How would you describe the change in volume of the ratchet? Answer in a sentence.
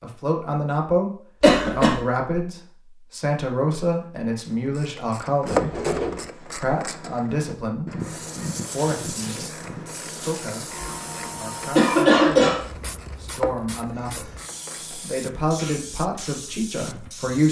The volume of the ratchet goes down.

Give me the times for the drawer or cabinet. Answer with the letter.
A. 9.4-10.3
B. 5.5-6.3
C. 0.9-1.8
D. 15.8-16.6
B.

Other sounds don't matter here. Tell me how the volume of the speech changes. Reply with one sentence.
The loudness of the speech goes down, then up.